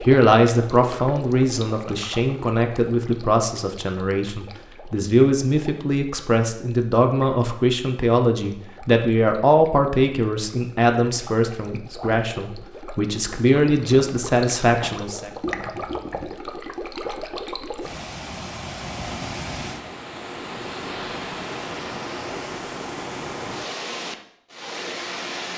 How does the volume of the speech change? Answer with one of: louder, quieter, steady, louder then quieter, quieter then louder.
steady.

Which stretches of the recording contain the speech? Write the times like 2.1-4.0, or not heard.
0.0-15.3.